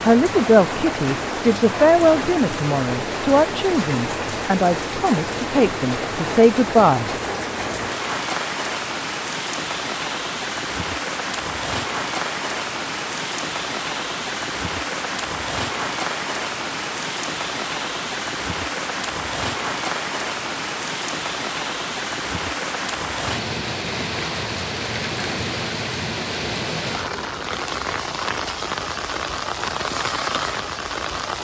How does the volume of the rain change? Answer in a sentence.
The volume of the rain stays about the same.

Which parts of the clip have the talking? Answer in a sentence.
The talking can be heard from 0.0 to 7.1 s.